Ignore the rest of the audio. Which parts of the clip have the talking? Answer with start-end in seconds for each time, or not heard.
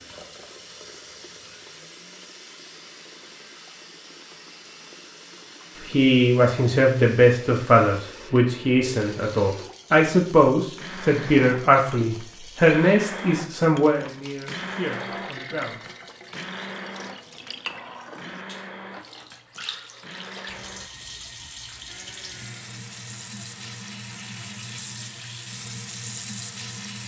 5.8-15.8.